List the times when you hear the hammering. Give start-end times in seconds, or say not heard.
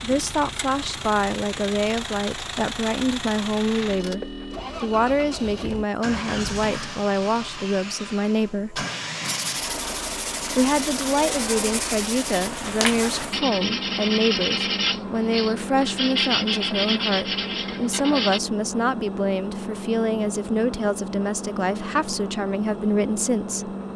not heard.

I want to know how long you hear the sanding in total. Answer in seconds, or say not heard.
9 s.